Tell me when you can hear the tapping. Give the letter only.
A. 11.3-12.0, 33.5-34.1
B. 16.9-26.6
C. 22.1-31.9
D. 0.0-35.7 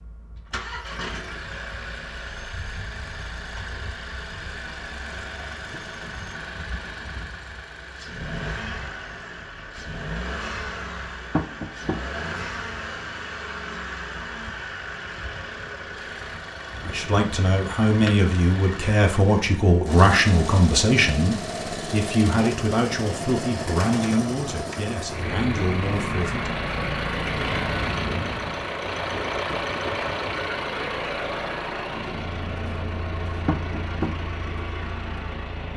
A.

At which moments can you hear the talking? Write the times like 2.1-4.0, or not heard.
16.9-26.6.